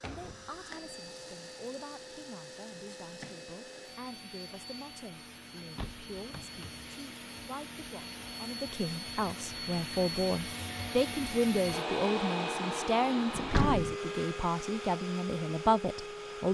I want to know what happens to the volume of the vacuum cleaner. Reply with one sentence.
The loudness of the vacuum cleaner goes up.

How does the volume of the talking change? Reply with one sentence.
The volume of the talking goes up.